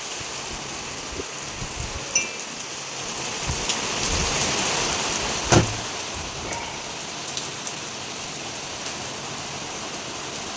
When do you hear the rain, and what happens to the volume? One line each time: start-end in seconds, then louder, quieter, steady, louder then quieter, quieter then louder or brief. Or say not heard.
0.0-10.5 louder then quieter.